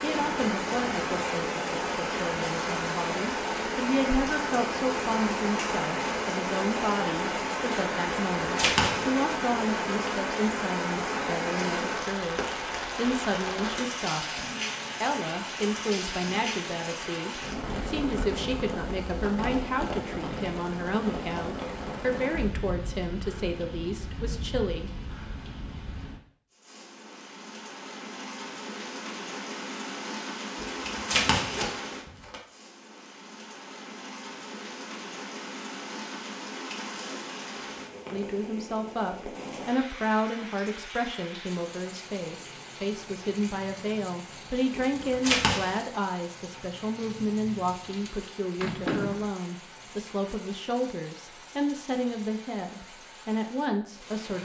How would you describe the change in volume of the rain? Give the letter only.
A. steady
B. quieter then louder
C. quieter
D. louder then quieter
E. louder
C.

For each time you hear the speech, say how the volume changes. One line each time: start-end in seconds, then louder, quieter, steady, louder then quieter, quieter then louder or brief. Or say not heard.
0.0-24.9 steady
38.1-54.4 steady.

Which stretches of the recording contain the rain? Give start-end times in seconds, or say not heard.
0.0-54.4.